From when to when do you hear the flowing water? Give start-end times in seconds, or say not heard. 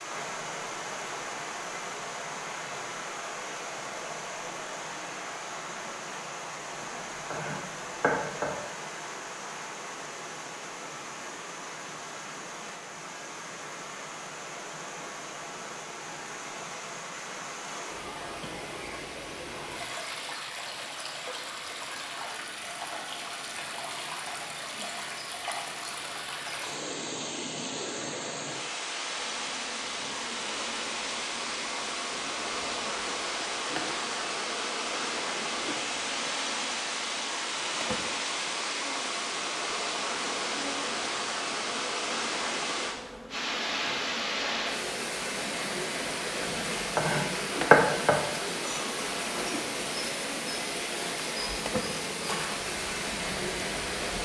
0.0-54.2.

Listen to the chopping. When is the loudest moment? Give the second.
48 s.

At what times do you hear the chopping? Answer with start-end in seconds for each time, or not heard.
6.8-8.6, 46.4-48.2.